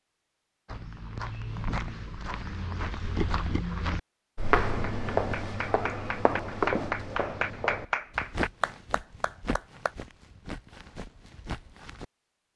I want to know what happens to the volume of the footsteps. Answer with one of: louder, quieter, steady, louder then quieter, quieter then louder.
louder then quieter.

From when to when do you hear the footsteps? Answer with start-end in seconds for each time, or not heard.
0.7-12.1.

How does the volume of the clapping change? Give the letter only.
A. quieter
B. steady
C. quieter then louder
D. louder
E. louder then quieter
E.